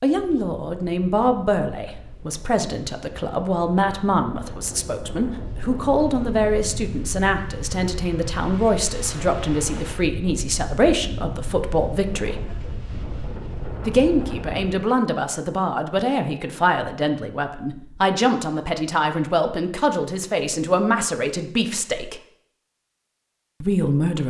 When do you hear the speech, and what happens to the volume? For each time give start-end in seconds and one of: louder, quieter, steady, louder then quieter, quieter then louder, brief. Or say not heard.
0.0-12.4 steady
13.8-22.2 steady
23.6-24.2 brief.